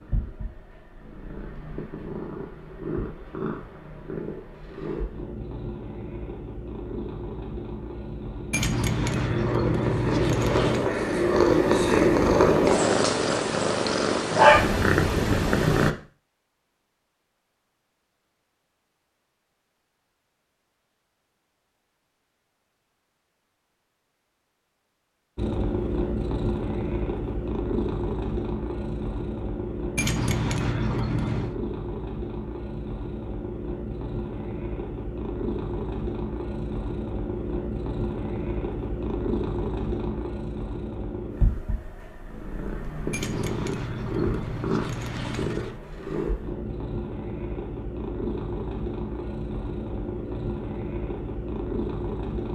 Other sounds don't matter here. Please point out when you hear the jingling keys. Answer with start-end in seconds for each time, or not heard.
8.5-10.9, 29.9-31.5, 43.1-45.8.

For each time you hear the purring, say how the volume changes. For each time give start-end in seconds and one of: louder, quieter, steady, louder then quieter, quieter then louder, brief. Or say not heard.
0.0-15.9 louder
25.4-52.4 steady.